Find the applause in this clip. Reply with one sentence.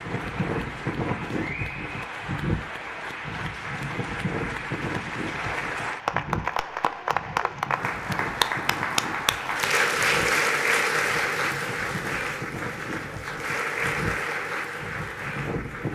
You can hear the applause from 0.0 to 15.9 s.